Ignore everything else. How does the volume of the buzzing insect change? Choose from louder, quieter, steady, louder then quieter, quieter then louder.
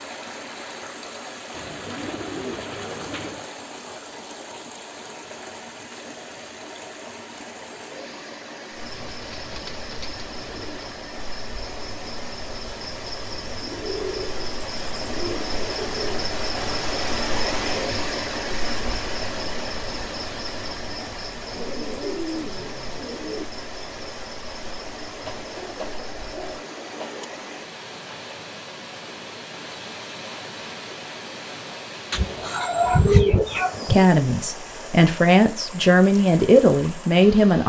louder then quieter.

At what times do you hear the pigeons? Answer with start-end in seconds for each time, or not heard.
1.5-3.5, 8.9-10.9, 13.6-16.3, 21.6-23.5, 25.2-27.2, 32.1-34.0.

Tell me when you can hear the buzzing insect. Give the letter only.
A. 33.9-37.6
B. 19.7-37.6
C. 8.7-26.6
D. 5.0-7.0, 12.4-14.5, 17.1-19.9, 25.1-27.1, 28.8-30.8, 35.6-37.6
C.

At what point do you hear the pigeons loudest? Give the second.
33 s.